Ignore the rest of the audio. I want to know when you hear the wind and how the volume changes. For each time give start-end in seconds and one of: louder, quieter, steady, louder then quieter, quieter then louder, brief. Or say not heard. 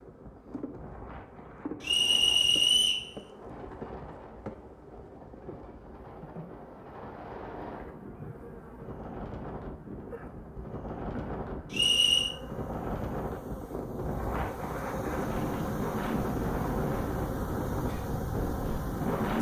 0.0-19.3 louder.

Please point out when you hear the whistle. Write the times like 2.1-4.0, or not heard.
1.8-3.0, 11.7-12.3.